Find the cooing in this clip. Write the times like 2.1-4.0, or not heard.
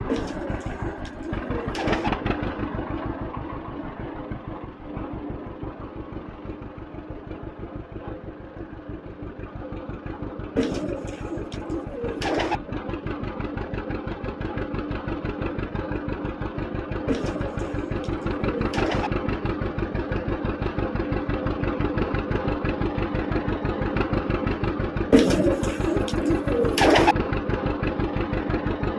0.1-2.1, 10.6-12.6, 17.1-19.1, 25.1-27.1.